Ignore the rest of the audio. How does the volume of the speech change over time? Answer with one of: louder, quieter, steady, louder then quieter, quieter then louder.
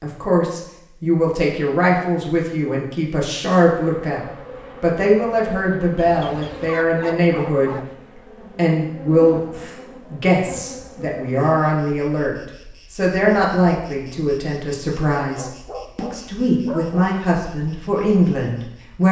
steady.